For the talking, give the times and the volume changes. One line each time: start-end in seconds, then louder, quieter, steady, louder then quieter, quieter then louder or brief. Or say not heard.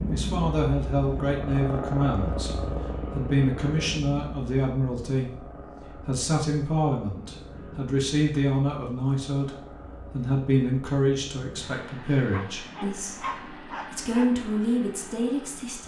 0.0-15.8 steady.